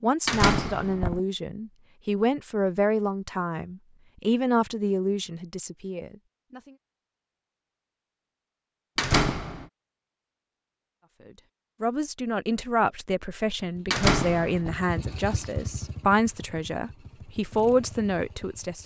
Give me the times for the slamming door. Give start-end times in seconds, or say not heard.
0.2-1.2, 8.9-9.7, 13.9-14.8.